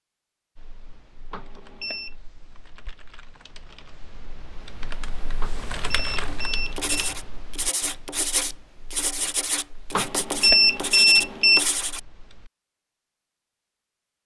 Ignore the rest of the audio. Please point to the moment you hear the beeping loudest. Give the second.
11 s.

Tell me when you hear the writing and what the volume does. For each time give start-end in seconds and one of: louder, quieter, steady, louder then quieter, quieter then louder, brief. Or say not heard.
6.2-12.0 steady.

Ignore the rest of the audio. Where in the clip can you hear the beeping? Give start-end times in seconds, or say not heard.
1.3-2.1, 5.4-7.2, 9.9-11.6.